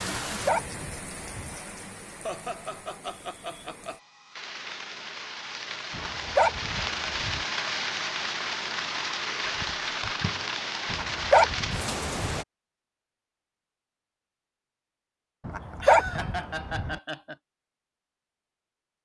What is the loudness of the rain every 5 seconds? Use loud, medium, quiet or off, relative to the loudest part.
medium, loud, loud, off.